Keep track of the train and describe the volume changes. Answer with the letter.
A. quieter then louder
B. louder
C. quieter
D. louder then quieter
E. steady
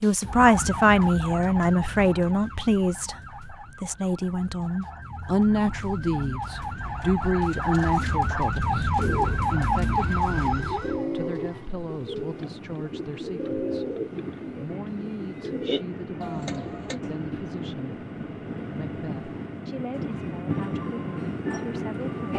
B.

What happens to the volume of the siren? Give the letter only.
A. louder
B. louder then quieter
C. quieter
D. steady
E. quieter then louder
E.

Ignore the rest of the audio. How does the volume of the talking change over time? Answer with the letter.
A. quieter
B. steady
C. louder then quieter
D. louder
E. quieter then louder
A.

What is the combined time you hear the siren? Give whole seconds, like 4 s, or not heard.
11 s.